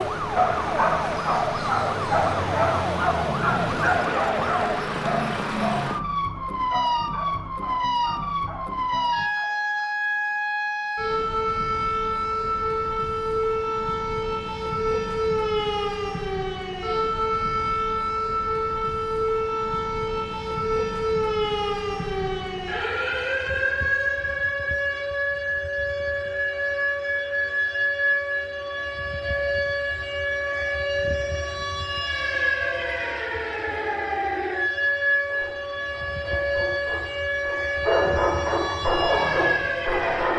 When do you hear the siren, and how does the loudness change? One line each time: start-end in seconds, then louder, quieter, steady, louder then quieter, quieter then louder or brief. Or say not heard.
0.0-40.3 steady.